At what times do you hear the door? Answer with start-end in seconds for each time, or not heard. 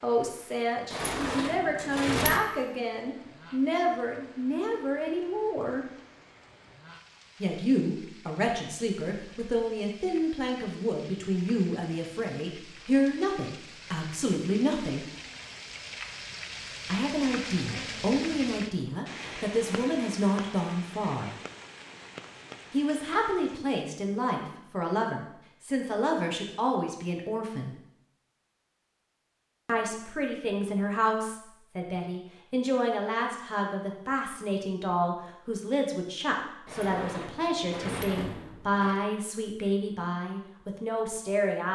0.9-2.4, 36.6-39.0.